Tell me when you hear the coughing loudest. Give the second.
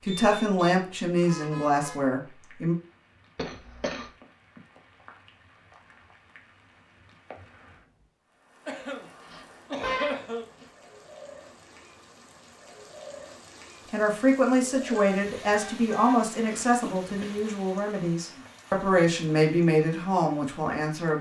10 s.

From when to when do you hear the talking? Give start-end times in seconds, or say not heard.
0.0-2.8, 13.9-21.1.